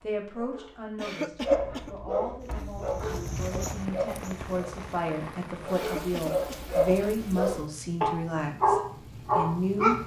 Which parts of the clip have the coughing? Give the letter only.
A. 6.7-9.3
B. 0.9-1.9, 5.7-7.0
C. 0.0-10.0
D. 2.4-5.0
B.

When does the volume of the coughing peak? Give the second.
1 s.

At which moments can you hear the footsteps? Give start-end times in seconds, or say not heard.
2.4-5.0.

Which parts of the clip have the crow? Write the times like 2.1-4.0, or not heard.
not heard.